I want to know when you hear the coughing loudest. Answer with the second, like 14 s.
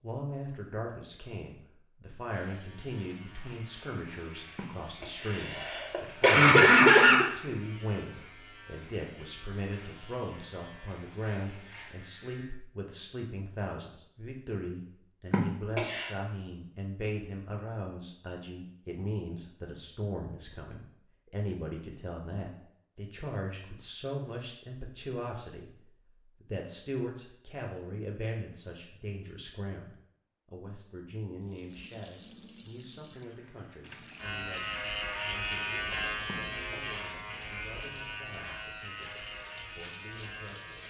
7 s.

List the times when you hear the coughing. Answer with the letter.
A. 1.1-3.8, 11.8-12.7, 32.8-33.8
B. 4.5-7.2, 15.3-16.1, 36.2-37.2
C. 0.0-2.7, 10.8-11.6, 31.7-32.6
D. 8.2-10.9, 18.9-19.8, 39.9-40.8
B.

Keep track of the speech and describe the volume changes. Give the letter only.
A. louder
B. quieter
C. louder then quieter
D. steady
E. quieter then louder
B.